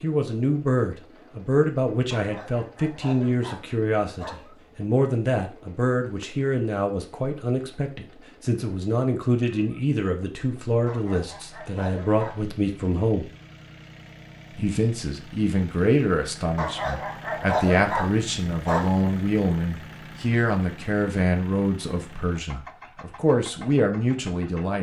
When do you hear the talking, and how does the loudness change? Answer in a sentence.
You can hear the talking from 0.0 to 13.3 s, at a steady volume; and from 14.6 to 24.7 s, at a steady volume.